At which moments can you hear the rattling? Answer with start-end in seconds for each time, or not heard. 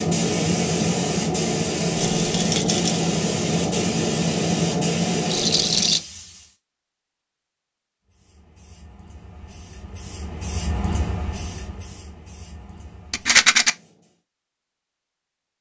2.1-3.0, 5.3-6.0, 13.1-13.7.